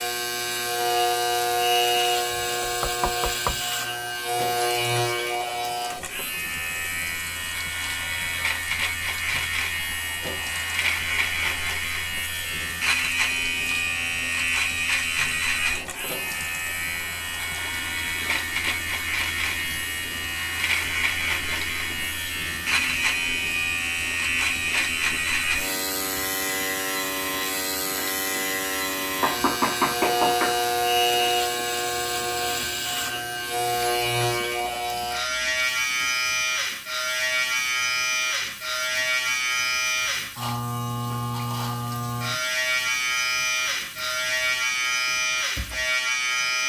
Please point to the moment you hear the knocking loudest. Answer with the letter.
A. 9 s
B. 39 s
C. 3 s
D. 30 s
D.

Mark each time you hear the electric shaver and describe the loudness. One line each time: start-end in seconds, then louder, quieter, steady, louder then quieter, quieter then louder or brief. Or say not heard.
0.0-46.6 steady.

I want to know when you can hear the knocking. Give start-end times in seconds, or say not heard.
2.4-3.6, 29.2-30.6.